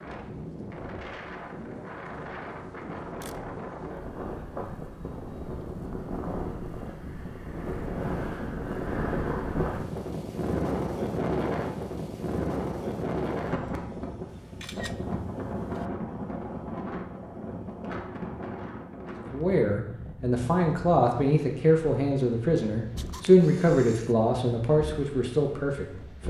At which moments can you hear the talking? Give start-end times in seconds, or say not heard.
19.1-26.2.